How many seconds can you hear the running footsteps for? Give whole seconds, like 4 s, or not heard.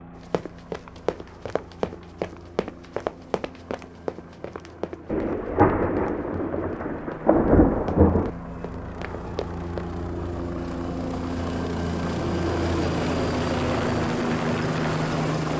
10 s.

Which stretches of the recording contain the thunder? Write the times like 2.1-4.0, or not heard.
5.1-8.3.